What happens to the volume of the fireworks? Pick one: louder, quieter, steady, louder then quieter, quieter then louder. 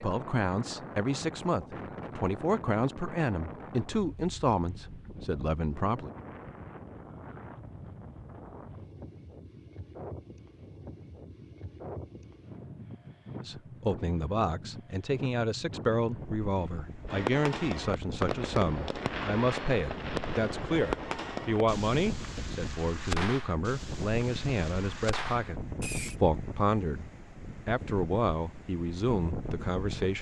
quieter.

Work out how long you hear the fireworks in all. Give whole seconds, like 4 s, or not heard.
9 s.